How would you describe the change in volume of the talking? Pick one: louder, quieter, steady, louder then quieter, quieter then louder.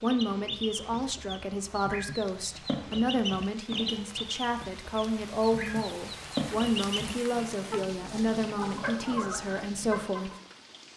steady.